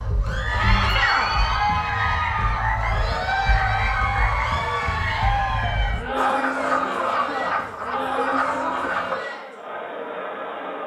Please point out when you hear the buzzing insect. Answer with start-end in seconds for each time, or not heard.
not heard.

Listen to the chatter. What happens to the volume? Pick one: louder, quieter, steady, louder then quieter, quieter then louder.
quieter.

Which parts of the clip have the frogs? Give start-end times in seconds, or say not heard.
0.0-9.2.